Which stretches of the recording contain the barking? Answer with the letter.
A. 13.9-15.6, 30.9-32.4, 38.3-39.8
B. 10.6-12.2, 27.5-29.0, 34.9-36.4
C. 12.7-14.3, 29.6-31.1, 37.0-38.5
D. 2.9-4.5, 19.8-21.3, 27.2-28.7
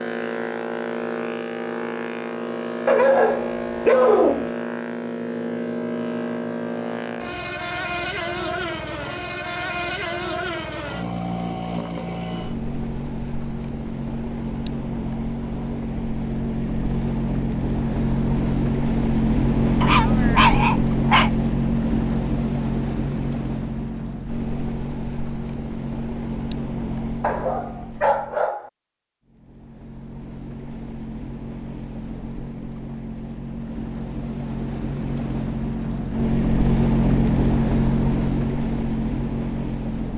D.